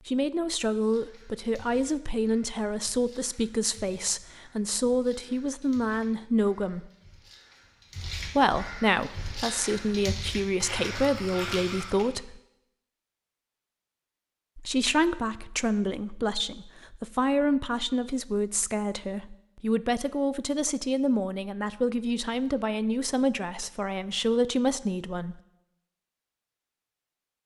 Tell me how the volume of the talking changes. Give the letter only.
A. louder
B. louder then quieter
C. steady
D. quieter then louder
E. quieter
C.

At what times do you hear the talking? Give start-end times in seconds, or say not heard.
0.1-6.9, 8.2-12.4, 14.6-25.4.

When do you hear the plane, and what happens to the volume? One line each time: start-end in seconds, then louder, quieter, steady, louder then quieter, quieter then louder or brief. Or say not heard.
not heard.